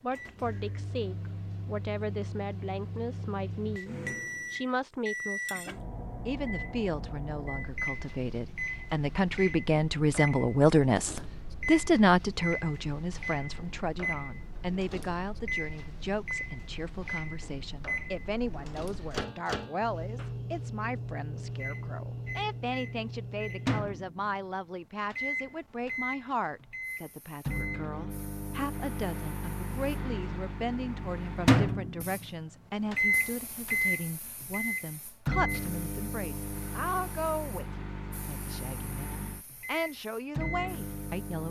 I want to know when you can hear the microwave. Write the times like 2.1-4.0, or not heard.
0.1-41.4.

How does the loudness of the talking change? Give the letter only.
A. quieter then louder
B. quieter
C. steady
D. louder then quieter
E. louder
D.